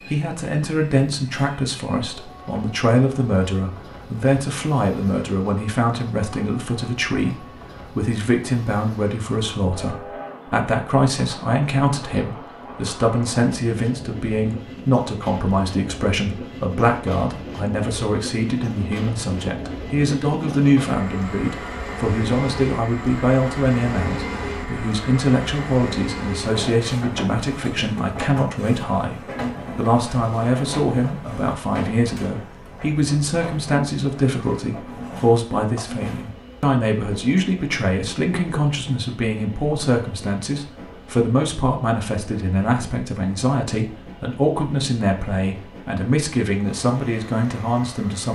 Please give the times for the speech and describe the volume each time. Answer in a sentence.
The speech can be heard from 0.1 to 48.2 s, at a steady volume.